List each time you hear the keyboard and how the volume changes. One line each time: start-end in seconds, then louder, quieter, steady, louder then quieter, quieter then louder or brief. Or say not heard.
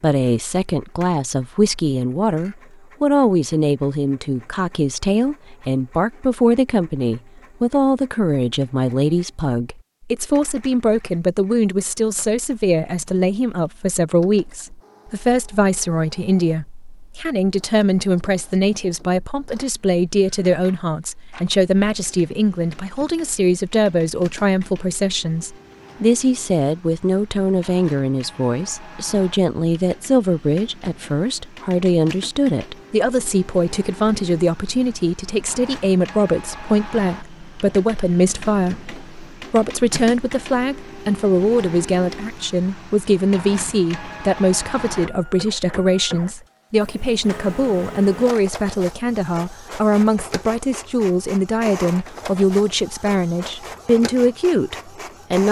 not heard.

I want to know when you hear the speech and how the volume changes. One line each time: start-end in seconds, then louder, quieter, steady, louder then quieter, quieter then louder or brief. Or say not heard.
0.0-55.4 steady.